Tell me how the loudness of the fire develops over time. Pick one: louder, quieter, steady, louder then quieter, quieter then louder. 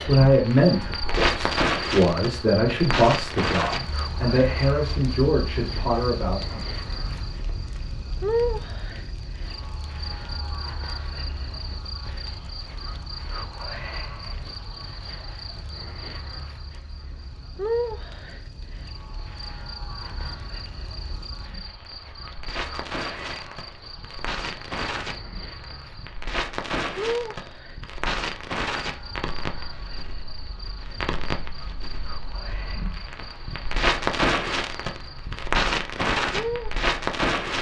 quieter then louder.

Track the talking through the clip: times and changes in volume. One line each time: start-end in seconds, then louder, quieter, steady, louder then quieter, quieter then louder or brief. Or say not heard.
0.1-6.7 steady.